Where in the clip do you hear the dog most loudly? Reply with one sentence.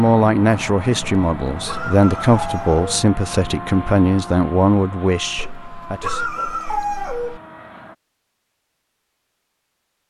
The volume of the dog peaks at 7 seconds.